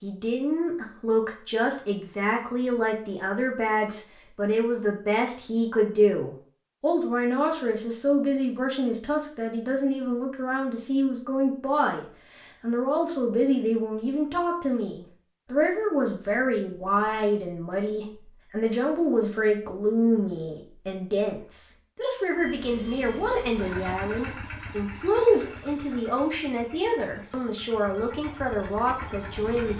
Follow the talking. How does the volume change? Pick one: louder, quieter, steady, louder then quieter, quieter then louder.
steady.